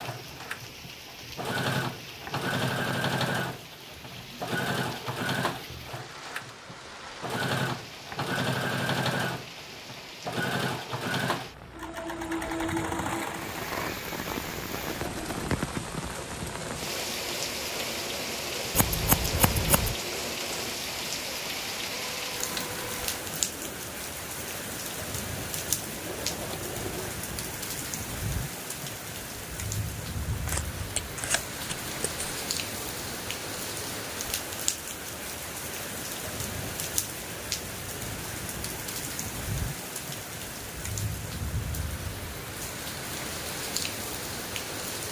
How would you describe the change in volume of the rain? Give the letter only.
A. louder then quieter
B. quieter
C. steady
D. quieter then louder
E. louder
E.